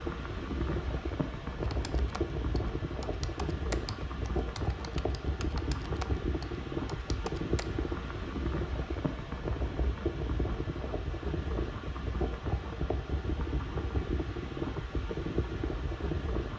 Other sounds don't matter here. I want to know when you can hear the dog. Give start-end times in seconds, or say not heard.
not heard.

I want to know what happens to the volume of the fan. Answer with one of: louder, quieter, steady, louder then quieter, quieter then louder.
steady.